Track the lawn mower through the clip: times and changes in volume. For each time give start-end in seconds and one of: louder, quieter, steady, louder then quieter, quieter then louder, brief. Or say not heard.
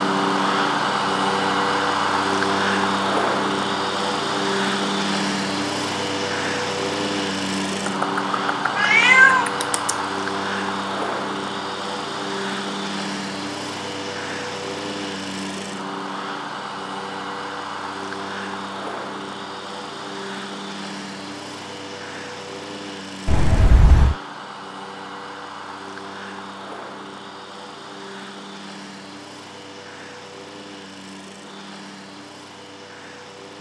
0.0-33.5 quieter.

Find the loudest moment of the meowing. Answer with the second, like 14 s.
9 s.